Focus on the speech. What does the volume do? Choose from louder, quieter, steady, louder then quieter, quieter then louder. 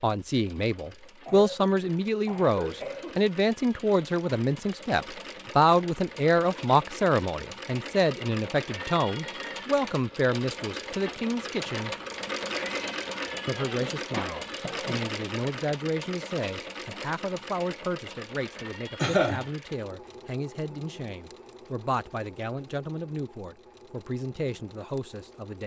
quieter.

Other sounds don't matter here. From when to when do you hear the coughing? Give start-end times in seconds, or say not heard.
1.2-3.2, 13.5-15.1, 18.9-19.4.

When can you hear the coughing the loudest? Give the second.
19 s.